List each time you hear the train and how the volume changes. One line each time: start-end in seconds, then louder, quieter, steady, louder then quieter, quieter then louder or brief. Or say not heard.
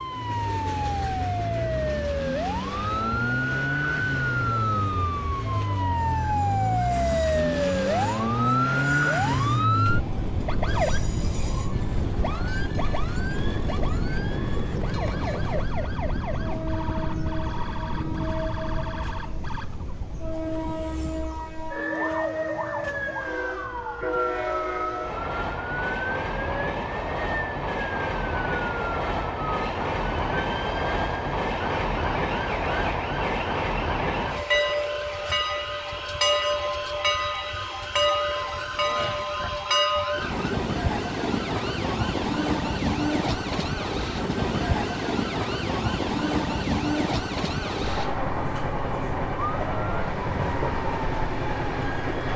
0.0-52.3 louder.